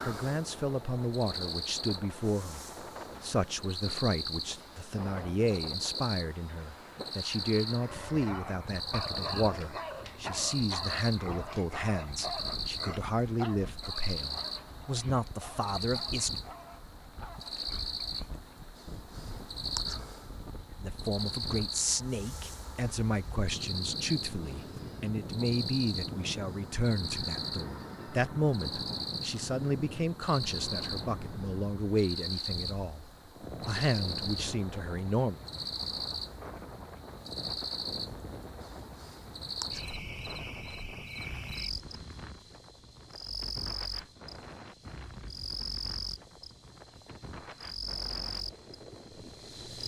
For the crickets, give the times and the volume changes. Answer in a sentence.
You can hear the crickets from 0.0 to 49.8 s, at a steady volume.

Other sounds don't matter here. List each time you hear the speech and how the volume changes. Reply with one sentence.
You can hear the speech from 0.0 to 16.4 s, at a steady volume; and from 20.8 to 35.4 s, at a steady volume.